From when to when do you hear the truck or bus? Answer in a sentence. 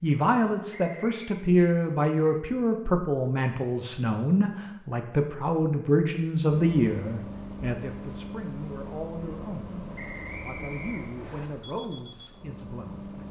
The truck or bus can be heard from 6.5 to 13.2 s.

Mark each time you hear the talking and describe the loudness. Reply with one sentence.
The talking can be heard from 0.0 to 13.2 s, getting quieter.